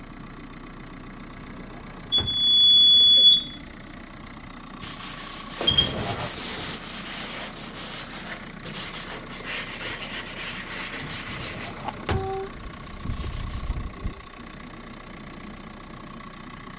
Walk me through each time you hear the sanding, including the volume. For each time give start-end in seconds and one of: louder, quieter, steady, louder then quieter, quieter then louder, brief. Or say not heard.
4.8-13.8 steady.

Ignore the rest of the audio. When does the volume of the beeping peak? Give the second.
3 s.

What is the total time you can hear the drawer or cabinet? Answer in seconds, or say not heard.
3 s.